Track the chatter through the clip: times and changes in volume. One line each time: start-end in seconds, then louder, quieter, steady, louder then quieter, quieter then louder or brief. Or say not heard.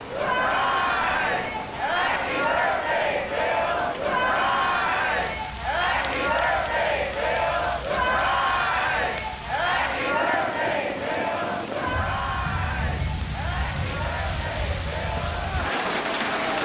0.0-16.6 quieter.